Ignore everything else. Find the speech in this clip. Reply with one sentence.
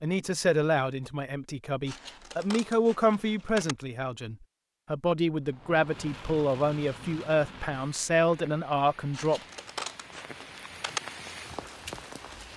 The speech can be heard from 0.0 to 9.4 s.